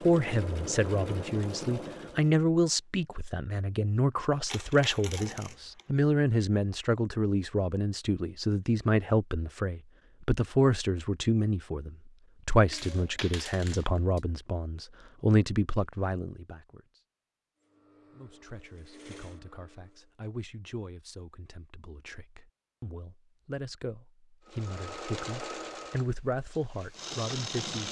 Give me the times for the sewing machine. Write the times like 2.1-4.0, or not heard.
0.0-2.4, 17.6-20.1, 24.4-27.8.